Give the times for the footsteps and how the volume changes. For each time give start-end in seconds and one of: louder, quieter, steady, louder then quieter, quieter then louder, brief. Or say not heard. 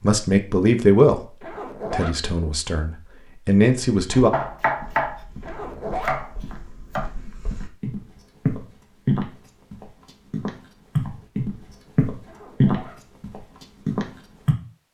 3.9-14.6 louder.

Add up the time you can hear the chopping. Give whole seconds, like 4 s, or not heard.
2 s.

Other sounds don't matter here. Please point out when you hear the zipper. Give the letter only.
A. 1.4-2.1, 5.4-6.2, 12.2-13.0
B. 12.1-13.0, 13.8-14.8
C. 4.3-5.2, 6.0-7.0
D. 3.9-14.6
A.